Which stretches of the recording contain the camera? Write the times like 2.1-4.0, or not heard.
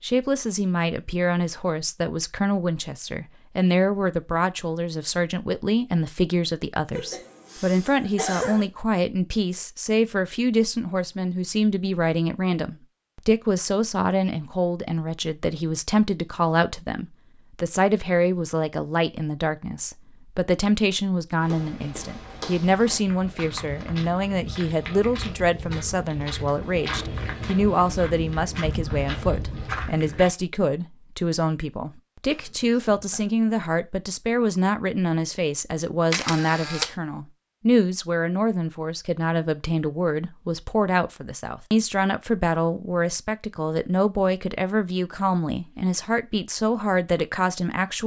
36.1-37.0.